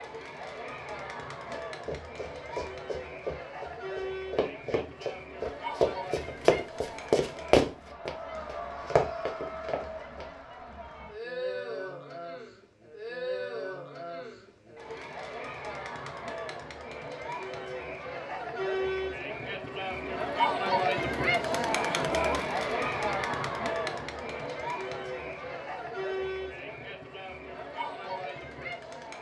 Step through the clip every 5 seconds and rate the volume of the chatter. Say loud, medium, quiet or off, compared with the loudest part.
medium, medium, medium, medium, loud, medium.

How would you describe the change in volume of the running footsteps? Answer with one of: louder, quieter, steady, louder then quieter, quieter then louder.
louder then quieter.